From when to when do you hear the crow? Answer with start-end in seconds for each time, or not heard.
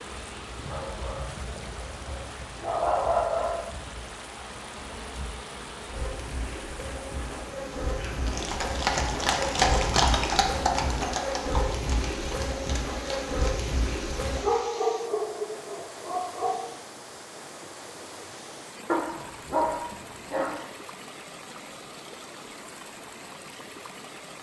not heard.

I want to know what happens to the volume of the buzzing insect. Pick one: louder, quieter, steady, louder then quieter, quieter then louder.
louder.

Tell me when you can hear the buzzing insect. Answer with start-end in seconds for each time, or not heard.
0.0-14.4.